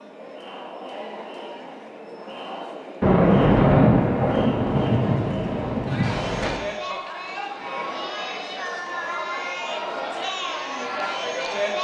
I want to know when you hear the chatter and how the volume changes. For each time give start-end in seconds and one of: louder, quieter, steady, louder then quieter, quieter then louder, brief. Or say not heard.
0.0-11.7 louder.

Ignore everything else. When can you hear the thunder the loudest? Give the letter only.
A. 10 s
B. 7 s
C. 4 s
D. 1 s
C.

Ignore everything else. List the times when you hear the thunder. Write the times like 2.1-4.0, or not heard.
3.0-6.6.